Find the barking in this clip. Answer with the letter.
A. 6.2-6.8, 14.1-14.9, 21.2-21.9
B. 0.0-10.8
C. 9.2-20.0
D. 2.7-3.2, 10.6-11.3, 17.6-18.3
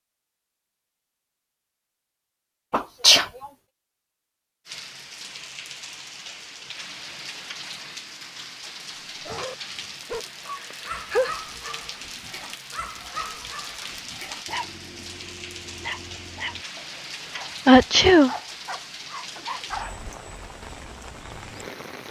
C.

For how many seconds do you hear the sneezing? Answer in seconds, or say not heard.
2 s.